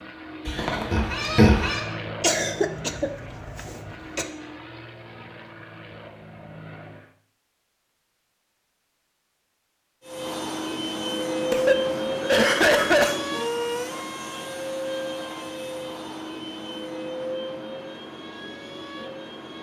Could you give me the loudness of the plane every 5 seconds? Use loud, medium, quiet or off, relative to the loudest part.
medium, quiet, loud, medium.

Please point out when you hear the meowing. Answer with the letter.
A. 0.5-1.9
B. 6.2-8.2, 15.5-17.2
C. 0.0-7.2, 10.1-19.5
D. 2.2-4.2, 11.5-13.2
A.